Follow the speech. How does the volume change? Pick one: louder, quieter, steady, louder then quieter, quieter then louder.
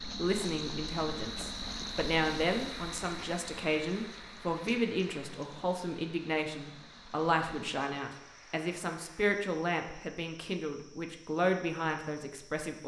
steady.